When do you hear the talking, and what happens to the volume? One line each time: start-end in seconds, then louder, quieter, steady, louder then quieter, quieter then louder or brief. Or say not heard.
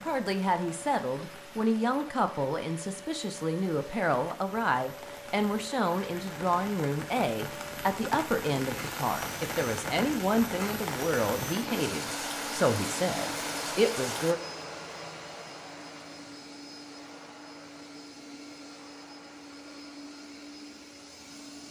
0.0-14.4 steady.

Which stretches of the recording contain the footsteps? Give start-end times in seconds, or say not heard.
not heard.